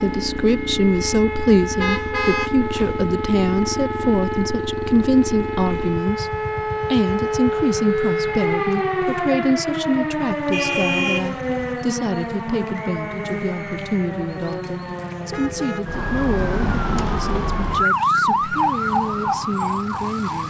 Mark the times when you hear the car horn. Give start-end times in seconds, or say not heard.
1.8-2.5, 10.5-11.8, 15.3-15.9.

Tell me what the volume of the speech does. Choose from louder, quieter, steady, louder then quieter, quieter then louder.
quieter.